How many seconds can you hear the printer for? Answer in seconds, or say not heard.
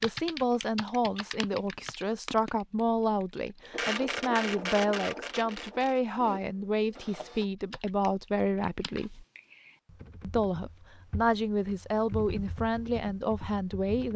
4 s.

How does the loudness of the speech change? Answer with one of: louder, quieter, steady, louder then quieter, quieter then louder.
steady.